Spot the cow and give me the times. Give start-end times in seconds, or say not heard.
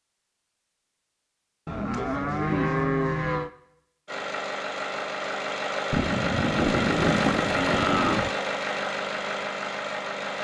1.6-3.5, 5.9-8.3.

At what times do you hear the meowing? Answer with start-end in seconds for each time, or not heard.
not heard.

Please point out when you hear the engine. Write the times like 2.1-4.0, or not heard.
4.0-10.3.